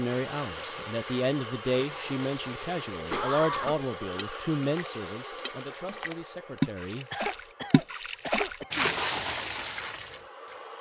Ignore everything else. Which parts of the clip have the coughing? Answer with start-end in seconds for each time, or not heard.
3.0-3.9, 7.1-8.9.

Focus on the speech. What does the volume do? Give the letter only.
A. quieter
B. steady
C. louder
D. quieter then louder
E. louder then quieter
A.